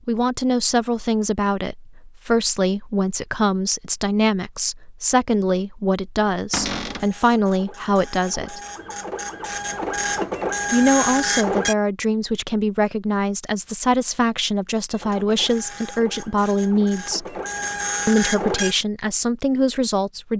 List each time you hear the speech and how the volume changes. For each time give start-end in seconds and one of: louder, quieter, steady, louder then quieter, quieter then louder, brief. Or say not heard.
0.1-8.6 steady
10.7-17.4 steady
18.1-20.3 brief.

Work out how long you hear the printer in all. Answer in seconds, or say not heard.
9 s.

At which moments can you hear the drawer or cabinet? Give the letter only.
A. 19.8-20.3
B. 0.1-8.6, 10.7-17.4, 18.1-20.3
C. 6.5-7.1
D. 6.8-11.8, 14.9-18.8
C.